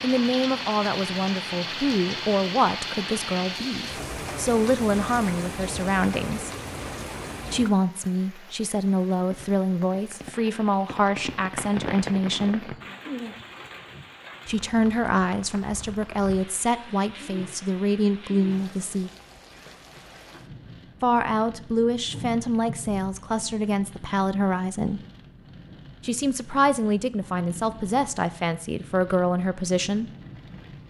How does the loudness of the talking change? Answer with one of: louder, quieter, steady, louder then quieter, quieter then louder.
steady.